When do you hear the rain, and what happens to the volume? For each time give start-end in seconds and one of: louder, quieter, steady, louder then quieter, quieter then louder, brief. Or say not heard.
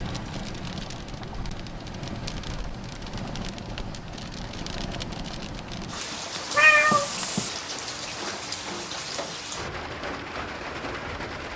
0.0-11.5 steady.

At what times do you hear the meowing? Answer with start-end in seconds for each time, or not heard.
6.5-7.5.